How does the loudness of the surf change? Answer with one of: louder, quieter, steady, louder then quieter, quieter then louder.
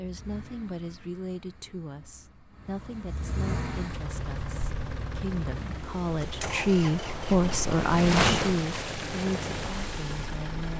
louder then quieter.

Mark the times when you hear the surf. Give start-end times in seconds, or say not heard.
3.9-10.7.